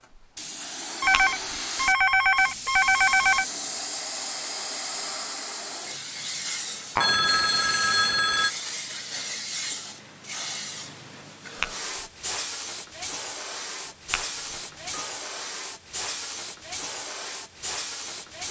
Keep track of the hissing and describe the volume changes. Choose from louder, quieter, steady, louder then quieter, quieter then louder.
steady.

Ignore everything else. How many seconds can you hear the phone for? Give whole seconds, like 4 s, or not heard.
5 s.